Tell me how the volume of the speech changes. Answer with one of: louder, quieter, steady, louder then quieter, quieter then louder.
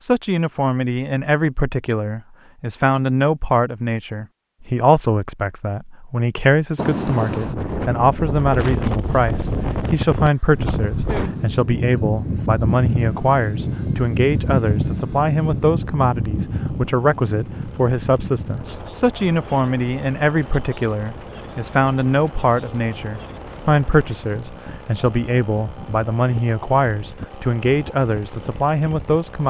steady.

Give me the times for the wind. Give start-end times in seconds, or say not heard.
6.8-29.2.